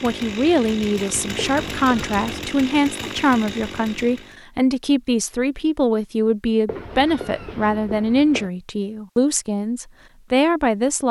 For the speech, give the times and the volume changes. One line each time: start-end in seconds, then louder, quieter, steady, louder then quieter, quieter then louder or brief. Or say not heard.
0.0-11.0 steady.